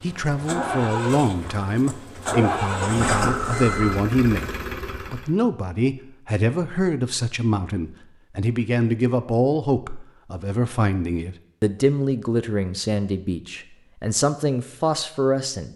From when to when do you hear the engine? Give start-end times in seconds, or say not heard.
0.0-5.3.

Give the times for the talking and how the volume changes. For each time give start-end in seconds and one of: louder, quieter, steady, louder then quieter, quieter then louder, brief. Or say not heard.
0.0-15.7 steady.